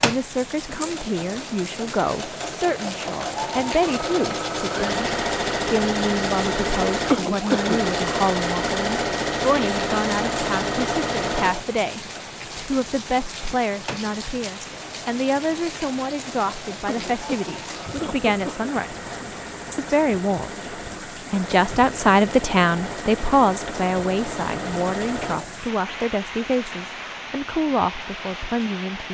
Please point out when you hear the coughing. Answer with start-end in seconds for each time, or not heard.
7.1-7.8, 16.9-18.7.